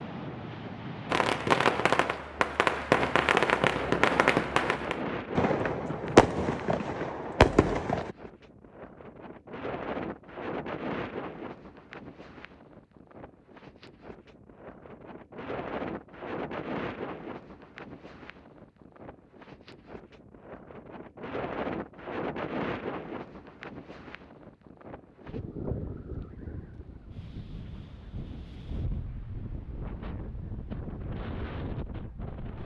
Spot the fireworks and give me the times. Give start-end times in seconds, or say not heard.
1.1-8.2.